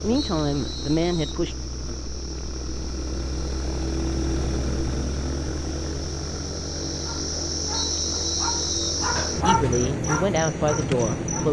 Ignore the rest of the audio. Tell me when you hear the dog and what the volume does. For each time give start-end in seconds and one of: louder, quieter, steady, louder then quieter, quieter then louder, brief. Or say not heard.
7.0-11.4 louder then quieter.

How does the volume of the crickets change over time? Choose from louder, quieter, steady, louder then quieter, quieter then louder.
louder.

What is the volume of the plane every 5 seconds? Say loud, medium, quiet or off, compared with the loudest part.
loud, loud, off.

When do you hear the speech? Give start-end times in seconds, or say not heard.
0.0-1.6, 9.4-11.4.